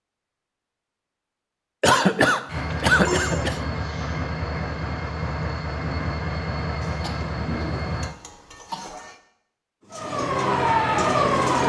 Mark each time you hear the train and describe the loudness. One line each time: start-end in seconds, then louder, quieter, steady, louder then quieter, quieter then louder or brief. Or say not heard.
2.5-8.2 steady.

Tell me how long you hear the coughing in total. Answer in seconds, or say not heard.
4 s.